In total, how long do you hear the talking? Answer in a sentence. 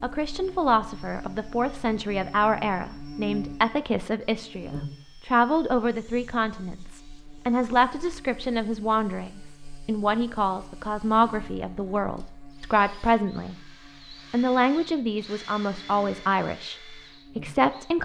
You can hear the talking for 17 seconds altogether.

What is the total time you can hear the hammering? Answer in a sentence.
You can't hear the hammering here.